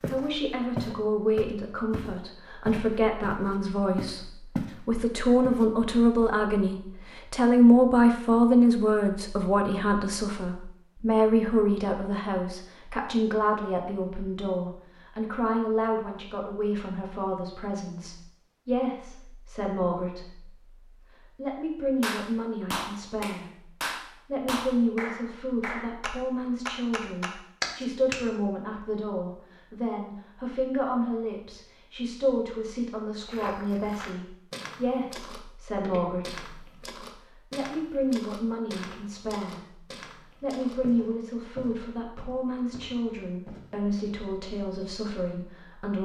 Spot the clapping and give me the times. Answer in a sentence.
The clapping can be heard from 22.0 to 28.2 s.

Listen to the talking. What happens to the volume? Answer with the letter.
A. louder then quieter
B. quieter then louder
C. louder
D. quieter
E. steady
D.